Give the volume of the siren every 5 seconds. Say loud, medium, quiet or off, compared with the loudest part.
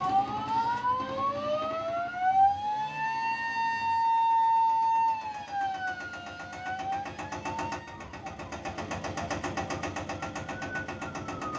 loud, medium, quiet.